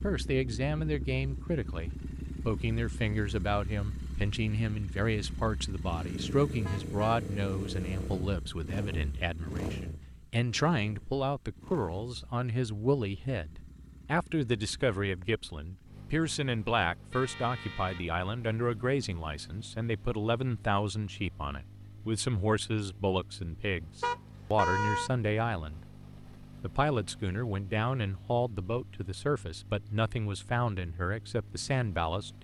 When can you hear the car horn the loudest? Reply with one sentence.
The volume of the car horn peaks at 25 seconds.